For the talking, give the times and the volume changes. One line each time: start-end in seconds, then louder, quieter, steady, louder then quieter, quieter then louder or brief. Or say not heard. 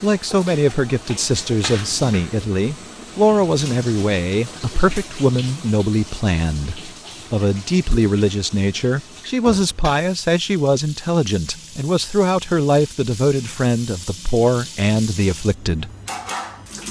0.0-15.9 steady.